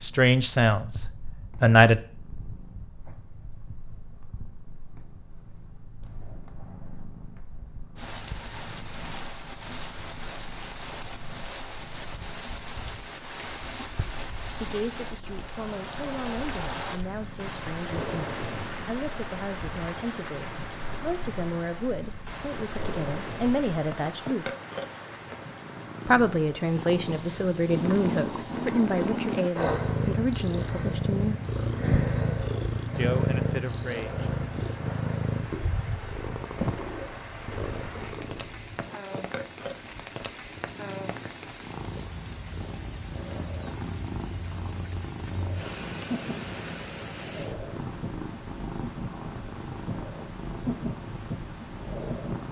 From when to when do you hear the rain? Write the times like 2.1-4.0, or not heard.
8.0-52.4.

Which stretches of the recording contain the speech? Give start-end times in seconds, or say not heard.
0.0-2.0, 14.6-24.5, 26.1-31.4, 33.0-34.3.